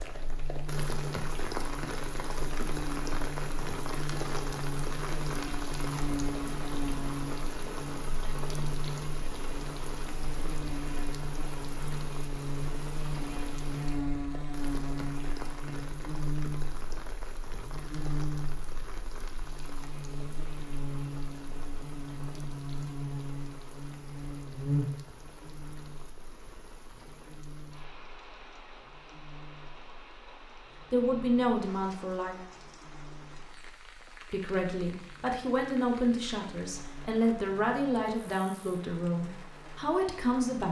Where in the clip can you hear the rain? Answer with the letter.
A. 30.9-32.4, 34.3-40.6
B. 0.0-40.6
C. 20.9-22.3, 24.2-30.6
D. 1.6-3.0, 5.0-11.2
B.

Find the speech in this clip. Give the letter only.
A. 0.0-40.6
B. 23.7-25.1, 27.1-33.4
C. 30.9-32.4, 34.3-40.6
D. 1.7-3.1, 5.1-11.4
C.